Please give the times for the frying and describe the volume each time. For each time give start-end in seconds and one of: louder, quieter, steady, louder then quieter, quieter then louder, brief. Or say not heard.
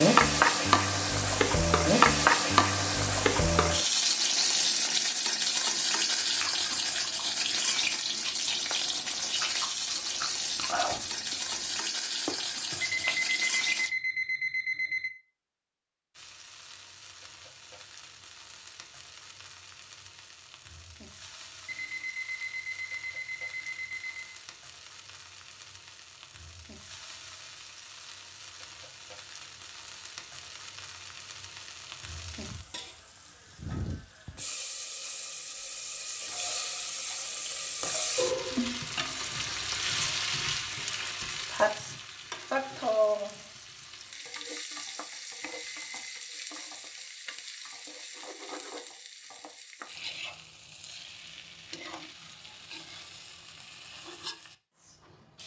0.0-13.9 quieter
16.1-55.4 louder then quieter.